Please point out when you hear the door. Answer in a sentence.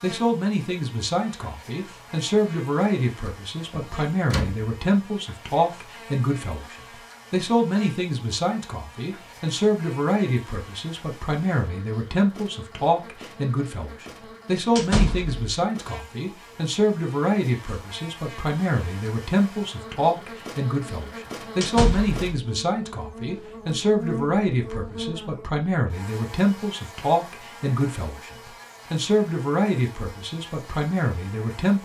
You can hear the door from 3.7 to 4.7 s, from 14.8 to 15.4 s and from 21.6 to 22.2 s.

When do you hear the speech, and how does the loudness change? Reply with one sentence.
You can hear the speech from 0.0 to 31.8 s, at a steady volume.